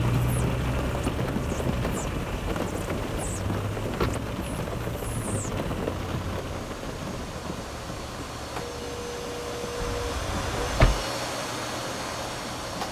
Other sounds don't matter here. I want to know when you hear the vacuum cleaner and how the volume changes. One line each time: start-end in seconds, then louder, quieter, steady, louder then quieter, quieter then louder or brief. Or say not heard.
0.0-12.8 louder.